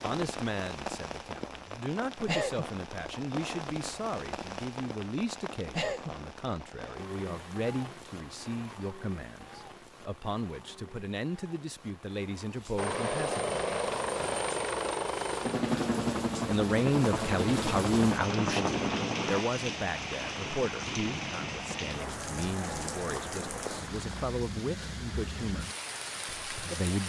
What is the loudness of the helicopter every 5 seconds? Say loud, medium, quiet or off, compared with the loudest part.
off, off, loud, loud, quiet, off.